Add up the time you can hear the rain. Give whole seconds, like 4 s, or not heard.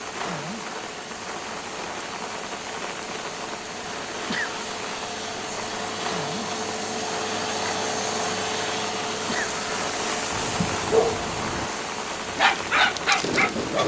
14 s.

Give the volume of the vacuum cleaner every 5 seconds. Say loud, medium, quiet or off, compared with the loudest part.
medium, loud, medium.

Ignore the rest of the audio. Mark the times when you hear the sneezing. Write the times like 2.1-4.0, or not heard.
4.1-4.5, 9.1-9.5.